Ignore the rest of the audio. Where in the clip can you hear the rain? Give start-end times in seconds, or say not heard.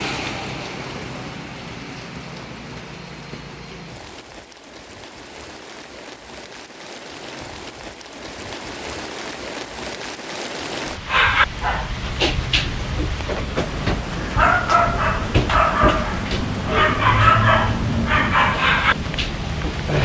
0.0-20.0.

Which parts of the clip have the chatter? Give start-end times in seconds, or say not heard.
not heard.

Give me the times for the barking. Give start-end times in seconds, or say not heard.
11.1-20.0.